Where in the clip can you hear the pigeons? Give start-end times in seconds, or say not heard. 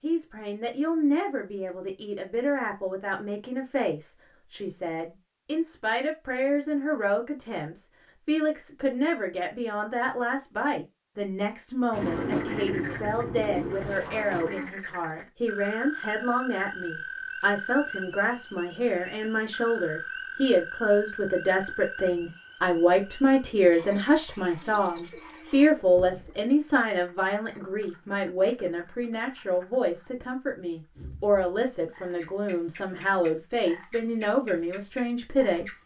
11.9-13.9, 24.6-26.6.